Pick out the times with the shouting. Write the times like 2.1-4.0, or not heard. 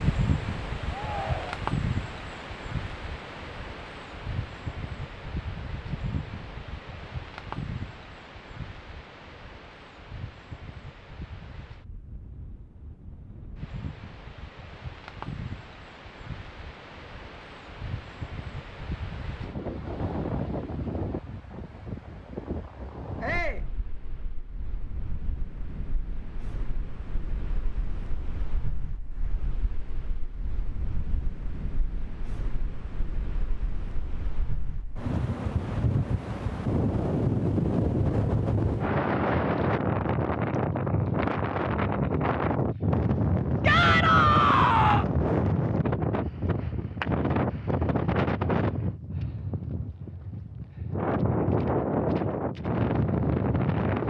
0.9-1.6, 23.2-23.6, 43.6-45.0.